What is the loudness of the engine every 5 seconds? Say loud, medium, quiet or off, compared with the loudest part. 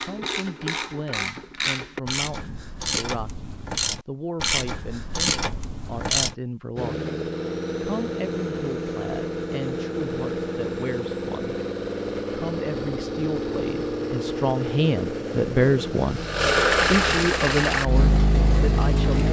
off, medium, medium, loud.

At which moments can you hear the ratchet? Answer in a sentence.
You can hear the ratchet from 0.0 to 6.3 s.